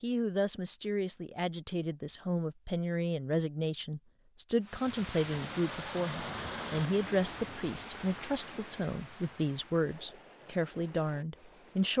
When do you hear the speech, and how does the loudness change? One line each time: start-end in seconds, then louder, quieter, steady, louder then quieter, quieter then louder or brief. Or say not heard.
0.0-11.9 steady.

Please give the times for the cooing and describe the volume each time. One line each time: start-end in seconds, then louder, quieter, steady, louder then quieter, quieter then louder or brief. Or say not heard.
not heard.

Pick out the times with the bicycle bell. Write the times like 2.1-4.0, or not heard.
not heard.